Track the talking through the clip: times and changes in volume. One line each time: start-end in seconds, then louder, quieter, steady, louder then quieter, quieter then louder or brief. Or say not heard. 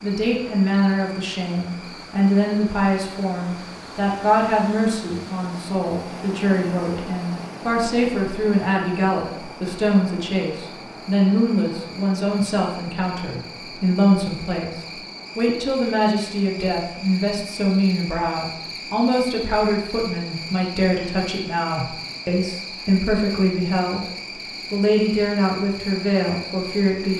0.0-24.0 steady
24.7-27.1 brief.